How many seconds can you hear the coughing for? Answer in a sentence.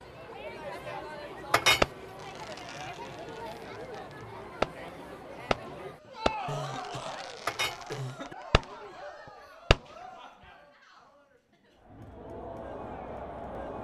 You can hear the coughing for 2 seconds altogether.